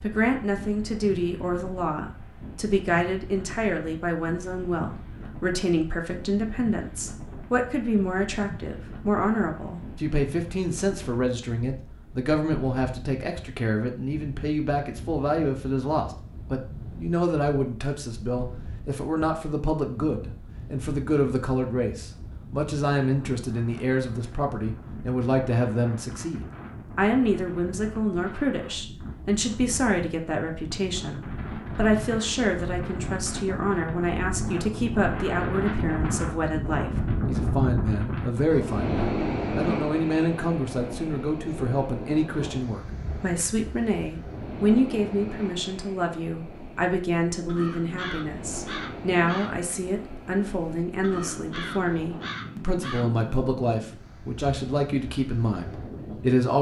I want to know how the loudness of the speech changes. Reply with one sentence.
The loudness of the speech stays about the same.